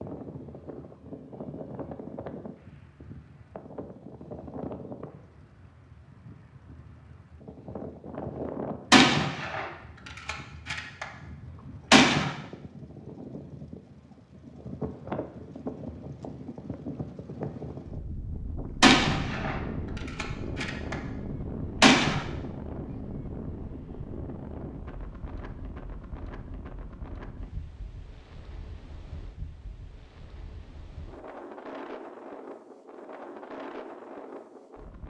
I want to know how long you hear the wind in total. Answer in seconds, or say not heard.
35 s.